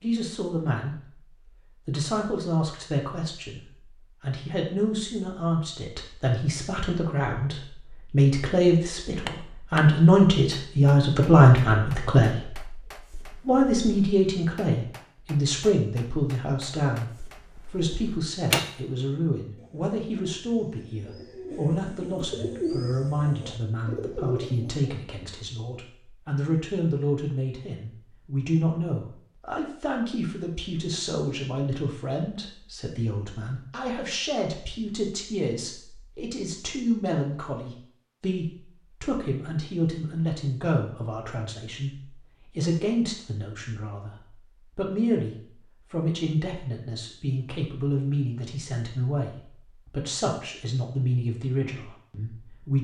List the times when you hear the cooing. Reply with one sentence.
You can hear the cooing from 19.6 to 25.0 s.